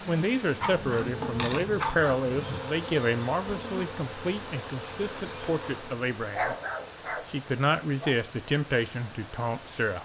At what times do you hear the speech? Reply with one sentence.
The speech can be heard from 0.1 to 6.5 s and from 7.2 to 9.9 s.